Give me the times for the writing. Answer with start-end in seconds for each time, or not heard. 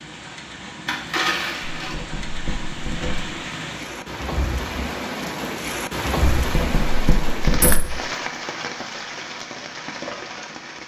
1.8-3.3, 6.4-8.0.